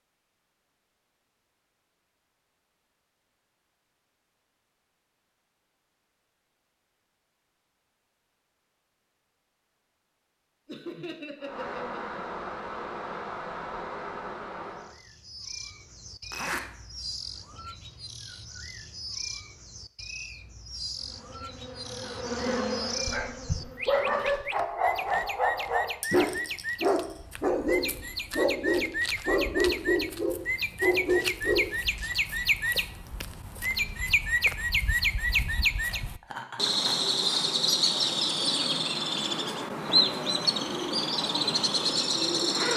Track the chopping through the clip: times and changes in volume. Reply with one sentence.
You can't hear the chopping here.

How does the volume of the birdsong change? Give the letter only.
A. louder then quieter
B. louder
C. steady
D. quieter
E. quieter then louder
B.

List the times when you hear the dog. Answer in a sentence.
The dog can be heard from 22.9 to 31.6 s.